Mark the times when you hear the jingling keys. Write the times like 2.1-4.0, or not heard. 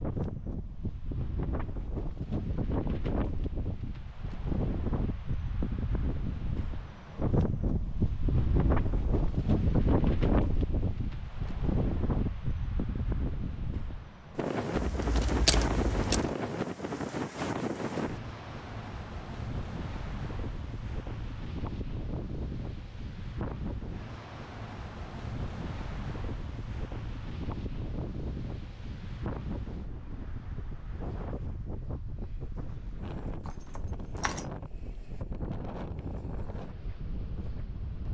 14.8-16.4, 33.5-34.5.